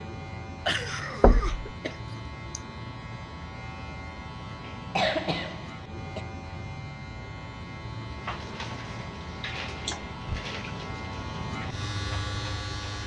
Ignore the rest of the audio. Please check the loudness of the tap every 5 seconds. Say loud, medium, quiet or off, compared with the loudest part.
off, loud, loud.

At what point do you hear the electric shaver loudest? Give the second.
12 s.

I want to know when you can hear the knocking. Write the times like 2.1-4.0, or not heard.
1.2-1.6.